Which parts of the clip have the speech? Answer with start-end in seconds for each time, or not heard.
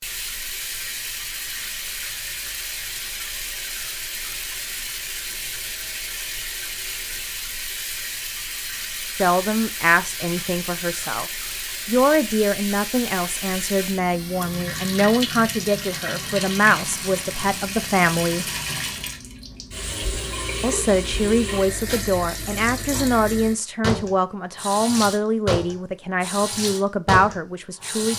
9.2-11.2, 11.8-18.4, 20.6-28.1.